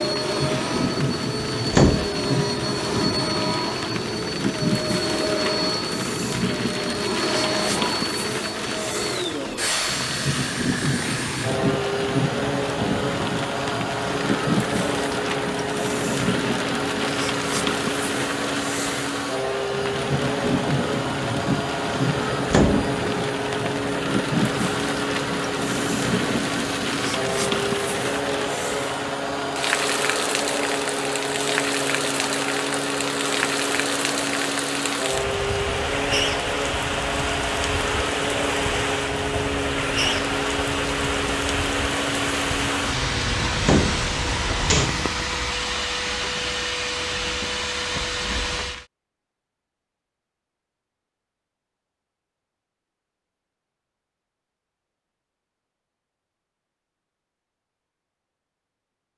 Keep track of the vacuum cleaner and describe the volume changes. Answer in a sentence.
The volume of the vacuum cleaner stays about the same.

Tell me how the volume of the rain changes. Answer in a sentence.
The volume of the rain stays about the same.